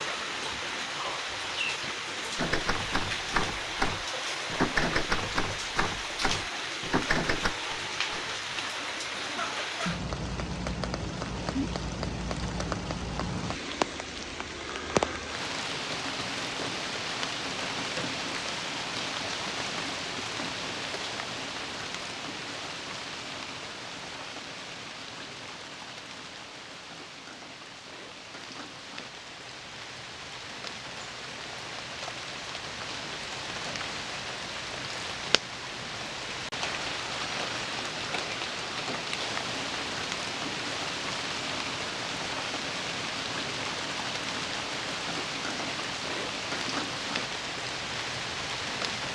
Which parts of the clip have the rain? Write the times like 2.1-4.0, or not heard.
0.0-49.1.